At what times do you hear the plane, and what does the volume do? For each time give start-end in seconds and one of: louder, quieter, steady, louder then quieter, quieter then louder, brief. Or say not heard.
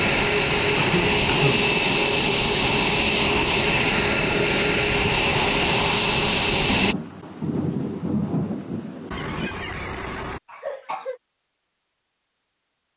0.0-7.0 steady.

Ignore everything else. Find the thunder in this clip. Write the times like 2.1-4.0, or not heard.
6.7-9.5.